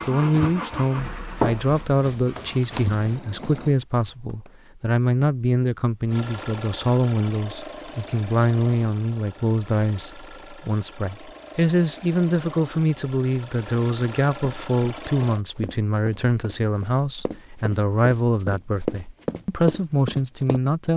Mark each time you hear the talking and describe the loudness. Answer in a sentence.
You can hear the talking from 0.1 to 20.9 s, at a steady volume.